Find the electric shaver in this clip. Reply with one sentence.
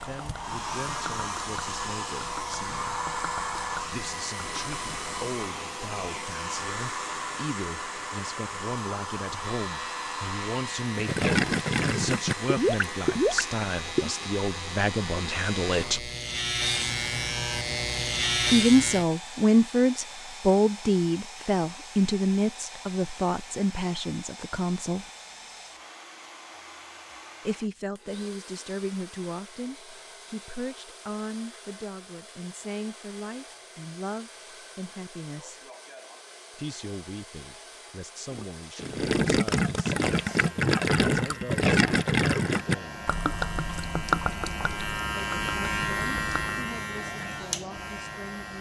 You can hear the electric shaver from 9.3 to 19.1 s and from 40.0 to 48.5 s.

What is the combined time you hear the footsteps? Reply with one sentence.
The footsteps can't be heard in this clip.